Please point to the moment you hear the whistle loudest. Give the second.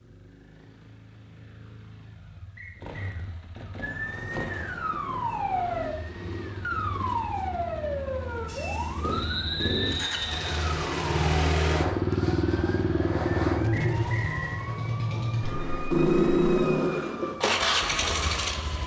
10 s.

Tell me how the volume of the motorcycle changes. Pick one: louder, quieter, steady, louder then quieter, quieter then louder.
louder.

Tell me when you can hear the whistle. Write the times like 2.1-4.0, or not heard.
2.5-3.1, 9.1-10.6, 13.7-14.6.